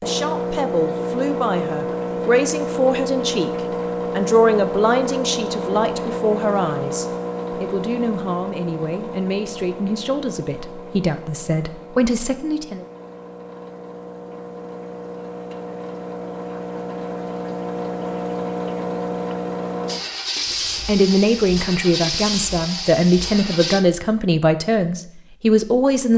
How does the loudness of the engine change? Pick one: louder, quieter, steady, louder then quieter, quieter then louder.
quieter then louder.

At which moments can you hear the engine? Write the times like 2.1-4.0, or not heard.
0.0-23.9.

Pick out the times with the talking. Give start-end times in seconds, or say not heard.
0.0-12.8, 20.9-26.1.